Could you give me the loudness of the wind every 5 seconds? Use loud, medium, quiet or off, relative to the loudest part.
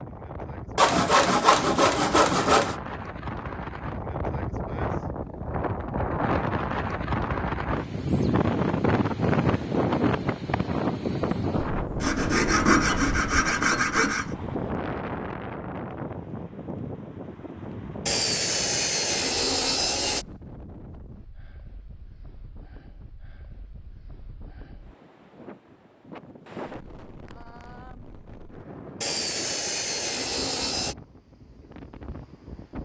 medium, loud, loud, medium, quiet, quiet, quiet.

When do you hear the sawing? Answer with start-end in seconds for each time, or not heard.
0.8-2.8, 12.0-14.3, 18.1-20.2, 29.0-30.9.